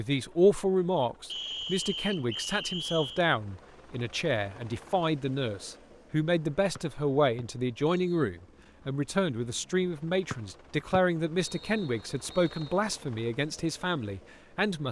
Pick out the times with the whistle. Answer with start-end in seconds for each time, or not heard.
1.2-3.2, 6.8-8.2, 10.3-12.8.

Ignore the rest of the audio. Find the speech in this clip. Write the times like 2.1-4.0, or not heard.
0.0-14.8.